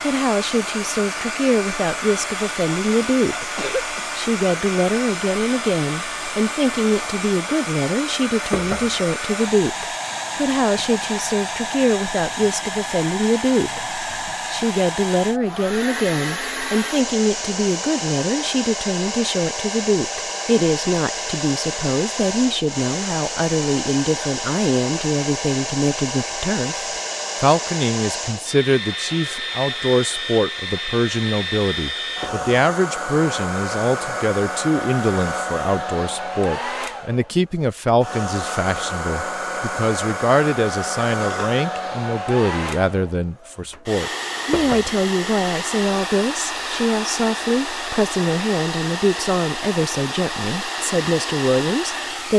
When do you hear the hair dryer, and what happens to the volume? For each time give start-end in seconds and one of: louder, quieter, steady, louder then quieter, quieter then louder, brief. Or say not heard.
0.0-52.3 steady.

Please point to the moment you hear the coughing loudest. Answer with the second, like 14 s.
4 s.